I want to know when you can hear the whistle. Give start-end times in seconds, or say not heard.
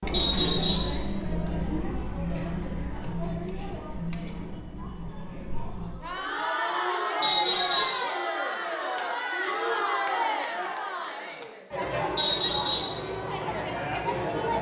0.1-0.9, 7.2-8.1, 12.2-13.0.